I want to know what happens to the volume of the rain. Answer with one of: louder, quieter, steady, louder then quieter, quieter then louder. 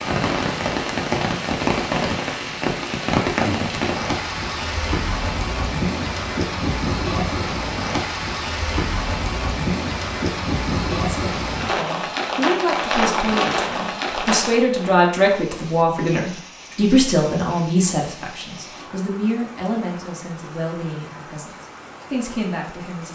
quieter.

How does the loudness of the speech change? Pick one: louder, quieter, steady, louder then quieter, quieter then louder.
louder then quieter.